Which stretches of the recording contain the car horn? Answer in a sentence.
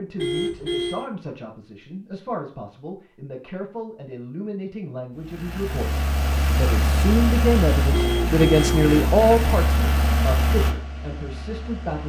You can hear the car horn from 0.1 to 1.1 s and from 7.9 to 9.1 s.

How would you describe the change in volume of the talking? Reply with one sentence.
The volume of the talking goes up, then down.